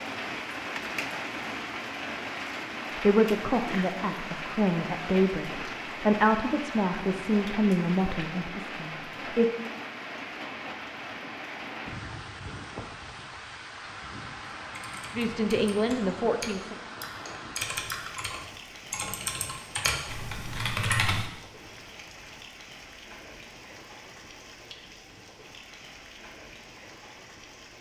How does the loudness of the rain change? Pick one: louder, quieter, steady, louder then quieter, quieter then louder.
quieter.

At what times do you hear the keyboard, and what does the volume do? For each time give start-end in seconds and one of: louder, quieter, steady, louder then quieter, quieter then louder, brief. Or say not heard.
14.7-21.2 louder.